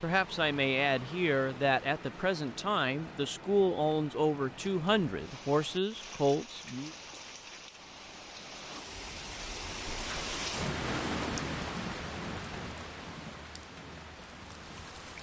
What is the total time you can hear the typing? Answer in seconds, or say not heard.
not heard.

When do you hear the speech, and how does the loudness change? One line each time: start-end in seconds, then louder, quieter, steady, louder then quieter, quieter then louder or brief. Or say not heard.
0.0-6.9 steady.